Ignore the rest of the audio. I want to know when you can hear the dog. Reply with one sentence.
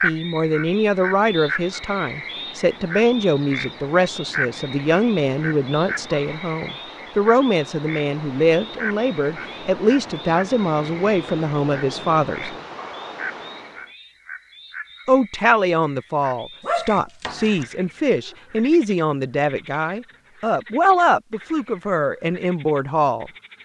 The dog can be heard from 16.6 to 17.6 s.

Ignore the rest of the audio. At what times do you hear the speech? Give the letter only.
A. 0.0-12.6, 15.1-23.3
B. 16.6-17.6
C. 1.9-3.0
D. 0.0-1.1
A.